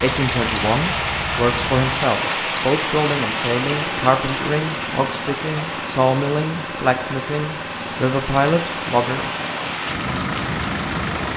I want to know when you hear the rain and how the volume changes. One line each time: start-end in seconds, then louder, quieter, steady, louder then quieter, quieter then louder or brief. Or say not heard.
0.0-11.3 quieter then louder.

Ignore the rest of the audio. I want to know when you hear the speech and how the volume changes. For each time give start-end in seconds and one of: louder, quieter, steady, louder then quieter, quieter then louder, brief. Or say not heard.
0.0-9.4 steady.